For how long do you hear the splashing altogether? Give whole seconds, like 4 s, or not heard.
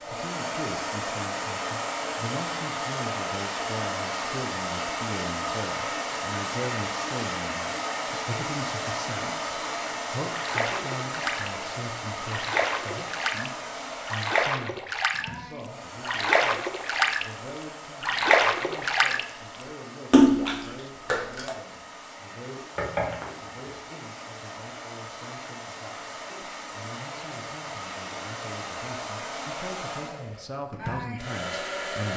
8 s.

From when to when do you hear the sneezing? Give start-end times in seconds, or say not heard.
not heard.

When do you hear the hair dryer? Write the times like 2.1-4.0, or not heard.
0.0-32.1.